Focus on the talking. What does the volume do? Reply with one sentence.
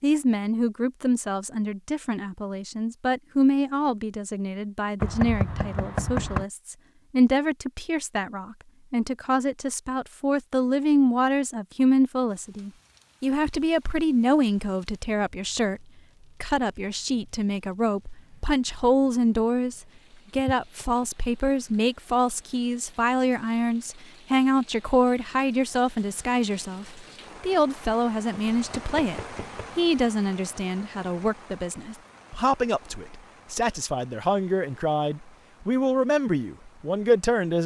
The volume of the talking stays about the same.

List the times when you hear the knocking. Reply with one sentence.
You can hear the knocking from 5.0 to 6.5 s, from 20.4 to 21.1 s and from 28.3 to 29.7 s.